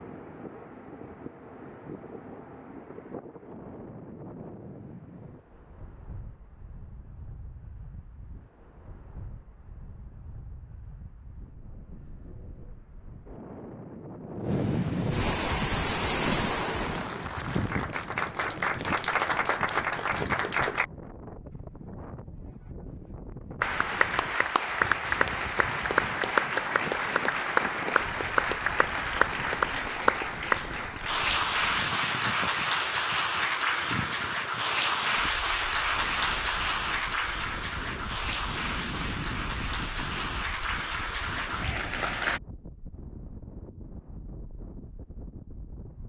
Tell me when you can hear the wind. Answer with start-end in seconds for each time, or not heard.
0.0-46.0.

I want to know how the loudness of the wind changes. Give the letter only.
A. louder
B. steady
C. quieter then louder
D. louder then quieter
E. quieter
D.